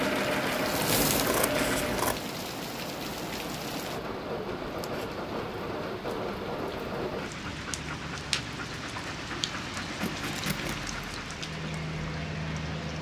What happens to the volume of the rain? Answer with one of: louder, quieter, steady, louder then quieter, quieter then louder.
steady.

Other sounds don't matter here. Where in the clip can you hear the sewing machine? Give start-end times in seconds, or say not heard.
0.0-2.2.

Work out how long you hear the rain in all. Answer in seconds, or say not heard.
13 s.